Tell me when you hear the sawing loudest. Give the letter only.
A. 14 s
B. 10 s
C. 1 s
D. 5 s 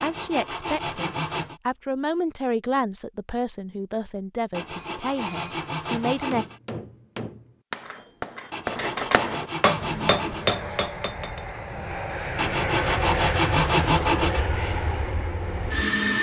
A.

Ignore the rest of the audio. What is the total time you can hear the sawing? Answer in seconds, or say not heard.
8 s.